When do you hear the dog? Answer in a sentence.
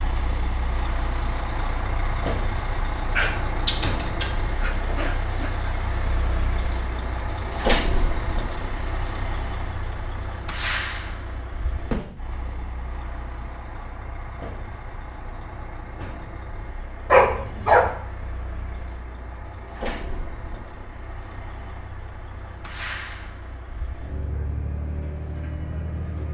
You can hear the dog from 3.1 to 5.7 s and from 17.1 to 17.9 s.